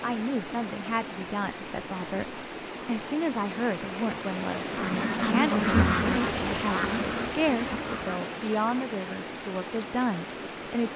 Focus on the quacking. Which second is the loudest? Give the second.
6 s.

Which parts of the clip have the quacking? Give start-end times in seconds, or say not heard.
4.7-8.2.